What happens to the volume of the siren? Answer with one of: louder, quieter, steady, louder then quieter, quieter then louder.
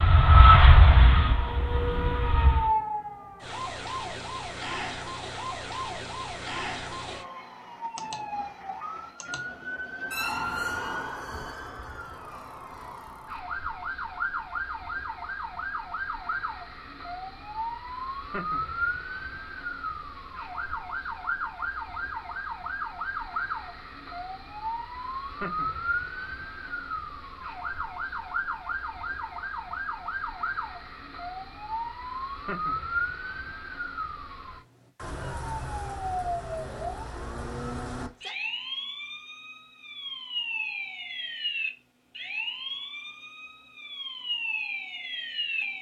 steady.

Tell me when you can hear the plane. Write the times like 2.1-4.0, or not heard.
0.0-2.8.